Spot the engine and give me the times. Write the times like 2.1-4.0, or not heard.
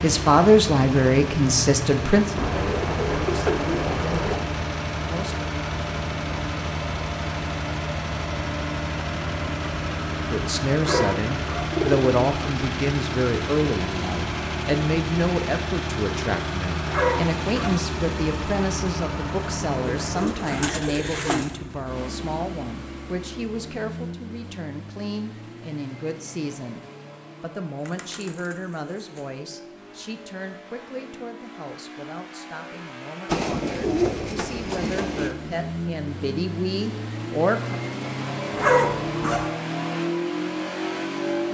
0.0-41.4.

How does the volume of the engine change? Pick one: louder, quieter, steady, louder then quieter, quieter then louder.
quieter then louder.